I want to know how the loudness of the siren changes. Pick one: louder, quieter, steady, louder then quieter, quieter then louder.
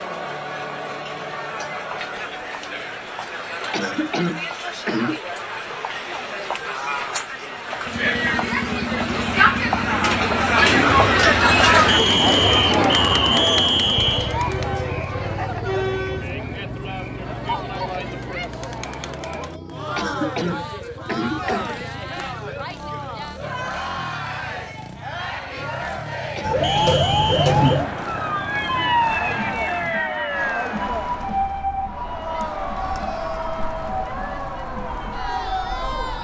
quieter.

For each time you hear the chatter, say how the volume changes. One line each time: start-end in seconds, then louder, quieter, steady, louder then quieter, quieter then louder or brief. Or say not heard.
0.0-36.1 louder then quieter.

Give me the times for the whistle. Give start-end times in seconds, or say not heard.
11.8-14.3, 26.6-27.6.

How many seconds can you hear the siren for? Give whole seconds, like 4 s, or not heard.
10 s.